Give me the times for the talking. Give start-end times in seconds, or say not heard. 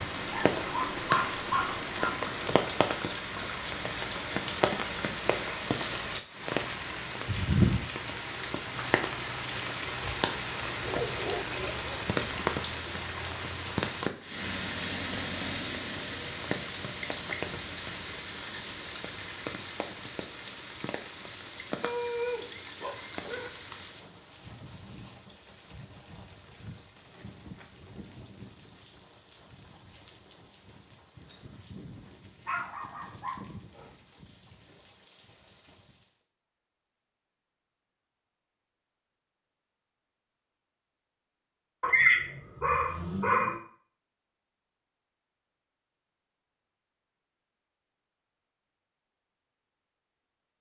not heard.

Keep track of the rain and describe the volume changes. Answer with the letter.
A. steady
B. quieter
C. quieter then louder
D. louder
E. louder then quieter
B.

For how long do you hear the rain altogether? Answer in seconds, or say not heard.
36 s.